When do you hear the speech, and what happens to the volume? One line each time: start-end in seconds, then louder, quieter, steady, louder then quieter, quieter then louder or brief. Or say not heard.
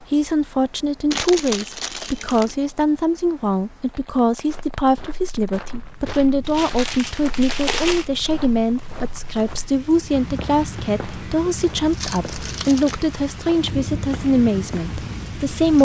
0.1-15.7 steady.